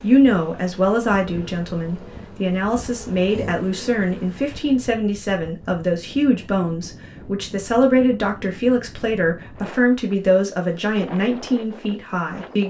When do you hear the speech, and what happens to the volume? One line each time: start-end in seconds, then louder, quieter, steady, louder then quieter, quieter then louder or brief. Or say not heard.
0.0-12.6 steady.